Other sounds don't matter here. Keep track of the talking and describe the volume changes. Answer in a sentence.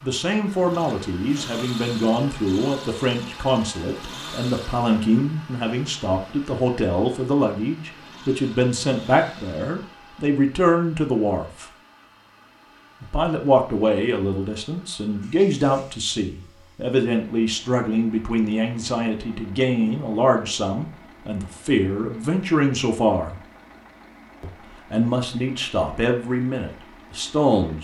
The loudness of the talking stays about the same.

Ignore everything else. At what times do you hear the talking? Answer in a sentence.
The talking can be heard from 0.0 to 11.7 s, from 13.0 to 23.4 s and from 24.4 to 27.7 s.